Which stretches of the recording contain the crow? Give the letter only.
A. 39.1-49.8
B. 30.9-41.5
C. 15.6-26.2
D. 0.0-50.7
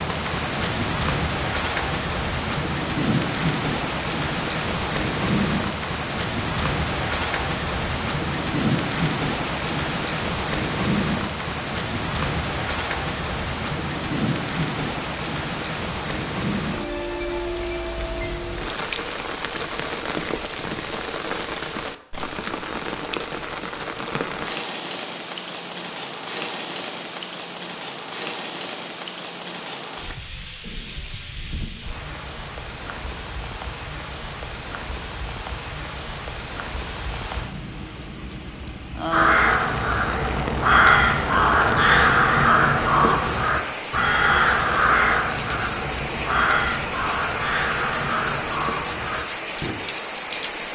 A.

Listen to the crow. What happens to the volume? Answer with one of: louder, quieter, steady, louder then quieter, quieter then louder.
quieter.